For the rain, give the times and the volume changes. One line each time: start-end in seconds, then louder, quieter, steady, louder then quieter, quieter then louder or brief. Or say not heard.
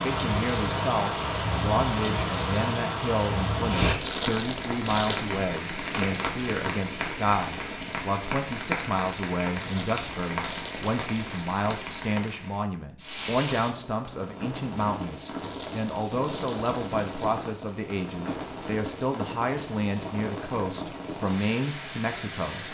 0.0-22.6 quieter.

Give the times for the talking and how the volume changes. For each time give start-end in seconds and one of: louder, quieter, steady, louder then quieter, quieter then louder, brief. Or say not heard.
0.0-22.6 steady.